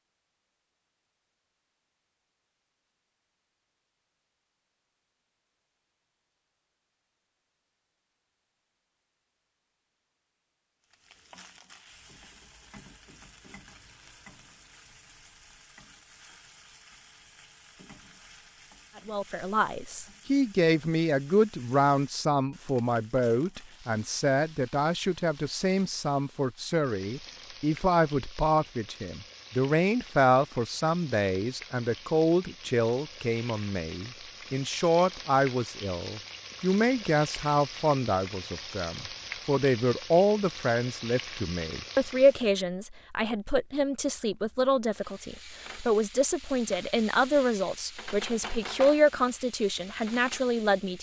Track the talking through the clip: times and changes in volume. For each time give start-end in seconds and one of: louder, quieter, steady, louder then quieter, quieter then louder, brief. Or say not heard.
18.9-50.9 steady.